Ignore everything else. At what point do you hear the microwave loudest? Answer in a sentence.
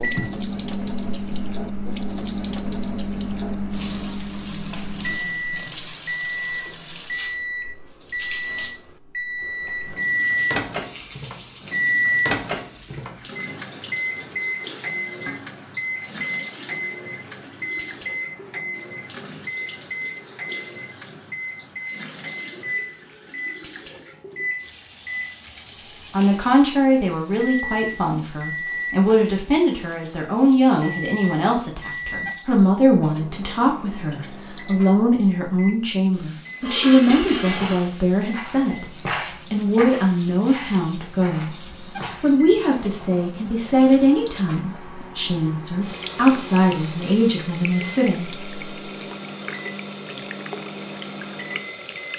The loudest moment of the microwave is at 12 seconds.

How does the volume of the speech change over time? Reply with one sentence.
The loudness of the speech stays about the same.